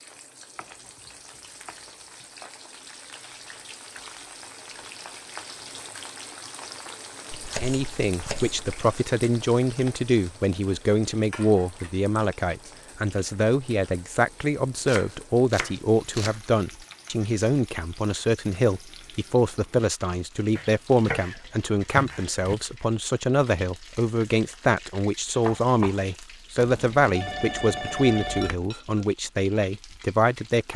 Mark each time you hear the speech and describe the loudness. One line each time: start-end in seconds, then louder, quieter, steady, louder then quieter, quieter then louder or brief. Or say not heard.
7.6-30.7 steady.